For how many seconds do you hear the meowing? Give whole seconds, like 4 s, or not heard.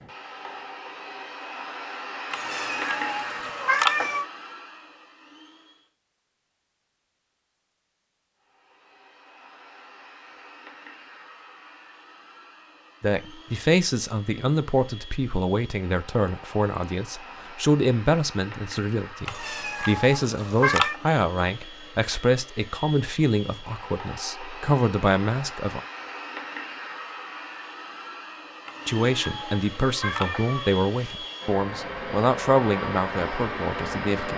6 s.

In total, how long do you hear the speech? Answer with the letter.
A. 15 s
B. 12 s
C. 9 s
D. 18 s
D.